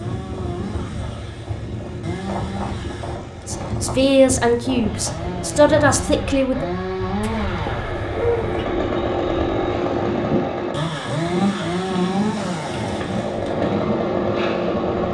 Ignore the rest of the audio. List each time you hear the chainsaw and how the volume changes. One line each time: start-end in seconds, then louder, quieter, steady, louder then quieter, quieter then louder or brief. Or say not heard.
0.0-15.0 louder.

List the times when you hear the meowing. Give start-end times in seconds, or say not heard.
7.2-8.7.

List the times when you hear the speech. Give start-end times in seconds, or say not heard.
3.5-6.7.